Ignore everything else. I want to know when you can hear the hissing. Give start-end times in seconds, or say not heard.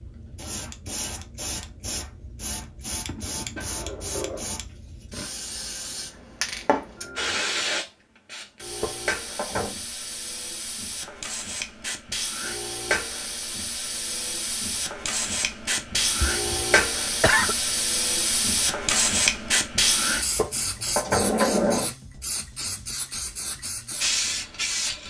0.0-25.0.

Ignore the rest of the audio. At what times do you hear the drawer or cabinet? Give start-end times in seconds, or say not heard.
3.5-4.5, 8.8-9.8, 20.4-21.9.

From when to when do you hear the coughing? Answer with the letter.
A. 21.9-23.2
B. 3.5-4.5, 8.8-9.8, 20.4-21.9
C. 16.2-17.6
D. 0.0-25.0
C.